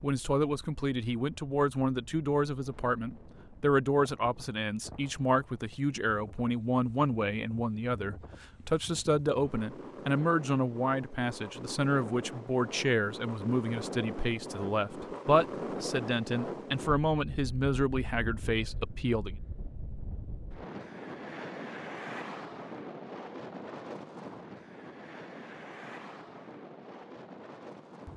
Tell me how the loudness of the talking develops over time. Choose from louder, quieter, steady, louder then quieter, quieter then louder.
steady.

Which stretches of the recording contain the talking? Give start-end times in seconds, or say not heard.
0.0-19.4.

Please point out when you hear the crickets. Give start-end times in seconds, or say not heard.
not heard.